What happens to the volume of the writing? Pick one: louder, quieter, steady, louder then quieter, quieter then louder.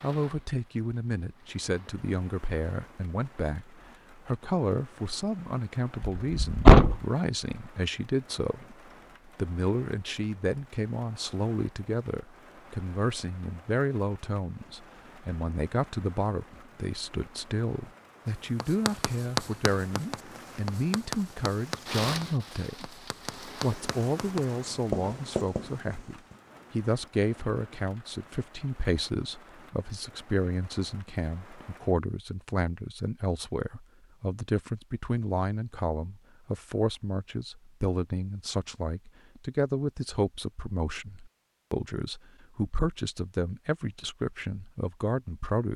quieter then louder.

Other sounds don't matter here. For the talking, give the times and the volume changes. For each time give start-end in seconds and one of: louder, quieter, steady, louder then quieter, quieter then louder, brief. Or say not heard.
0.0-45.7 steady.